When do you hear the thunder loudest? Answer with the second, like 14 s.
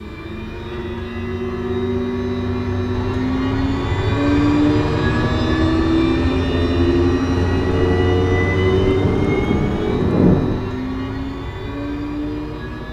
10 s.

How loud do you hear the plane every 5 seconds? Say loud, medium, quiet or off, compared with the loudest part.
loud, loud, medium.